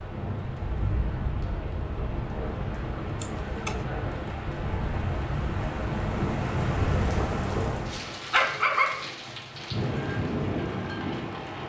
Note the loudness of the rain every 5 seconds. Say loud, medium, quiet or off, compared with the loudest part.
medium, loud, loud.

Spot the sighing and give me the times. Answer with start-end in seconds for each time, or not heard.
3.2-3.8.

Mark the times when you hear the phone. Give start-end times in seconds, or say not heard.
not heard.